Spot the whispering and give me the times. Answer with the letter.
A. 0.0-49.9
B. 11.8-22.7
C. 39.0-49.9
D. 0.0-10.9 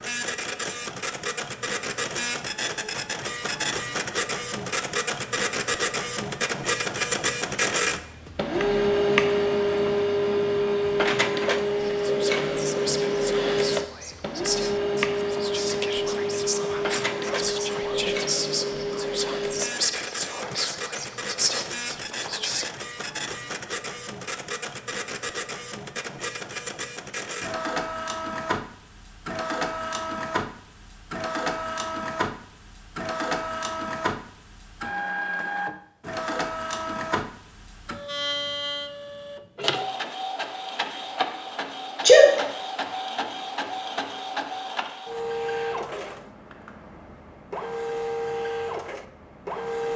B.